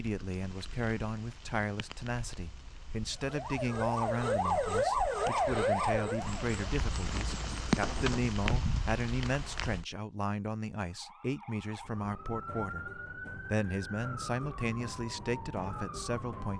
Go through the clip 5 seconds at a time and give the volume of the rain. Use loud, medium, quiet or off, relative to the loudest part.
quiet, loud, off, off.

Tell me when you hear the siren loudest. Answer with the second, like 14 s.
5 s.